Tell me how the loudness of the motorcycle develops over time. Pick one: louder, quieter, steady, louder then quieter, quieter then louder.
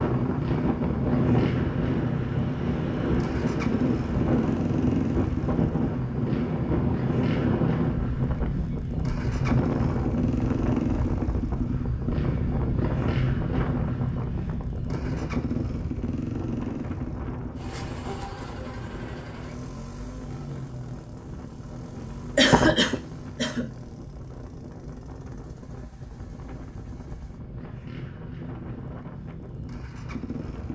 quieter.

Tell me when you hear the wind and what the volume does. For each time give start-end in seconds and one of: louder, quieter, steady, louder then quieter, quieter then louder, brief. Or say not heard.
0.0-30.7 quieter.